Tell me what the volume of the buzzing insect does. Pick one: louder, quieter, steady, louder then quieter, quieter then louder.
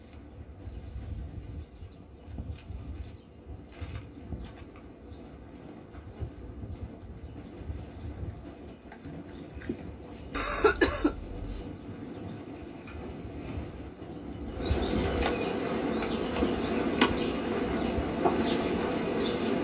louder.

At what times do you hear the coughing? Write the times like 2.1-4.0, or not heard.
10.3-11.7.